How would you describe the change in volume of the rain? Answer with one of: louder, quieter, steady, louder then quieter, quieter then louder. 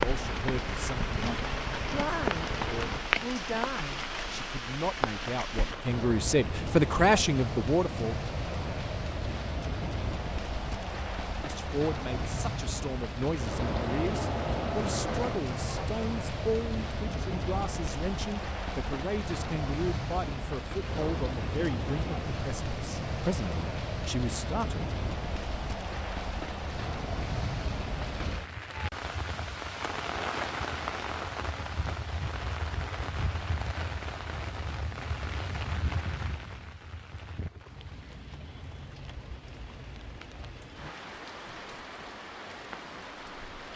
quieter.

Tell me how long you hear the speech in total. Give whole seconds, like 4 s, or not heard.
22 s.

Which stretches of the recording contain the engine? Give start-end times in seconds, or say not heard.
0.0-3.0, 13.5-15.9.